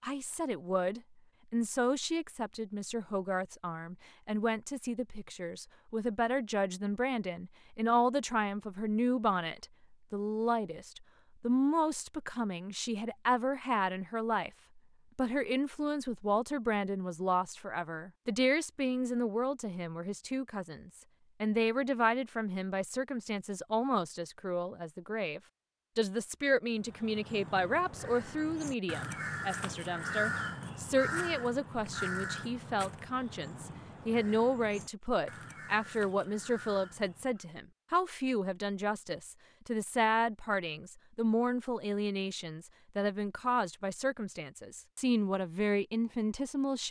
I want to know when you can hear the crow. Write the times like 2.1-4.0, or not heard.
26.7-37.5.